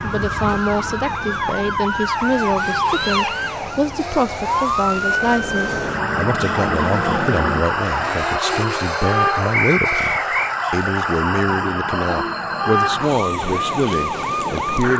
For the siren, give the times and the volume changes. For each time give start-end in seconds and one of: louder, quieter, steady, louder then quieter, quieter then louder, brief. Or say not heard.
0.0-14.9 steady.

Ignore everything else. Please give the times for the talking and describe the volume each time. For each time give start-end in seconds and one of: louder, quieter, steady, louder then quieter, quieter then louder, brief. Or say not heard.
0.0-14.9 steady.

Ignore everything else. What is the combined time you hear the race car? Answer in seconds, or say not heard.
15 s.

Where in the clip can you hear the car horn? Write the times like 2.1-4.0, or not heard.
not heard.